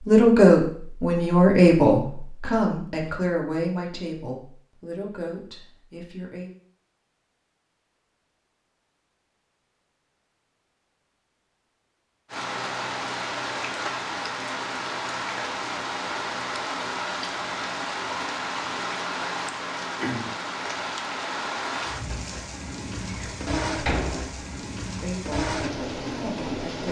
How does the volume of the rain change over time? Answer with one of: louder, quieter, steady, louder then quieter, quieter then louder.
steady.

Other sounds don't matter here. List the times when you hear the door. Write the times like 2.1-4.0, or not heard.
23.1-24.6.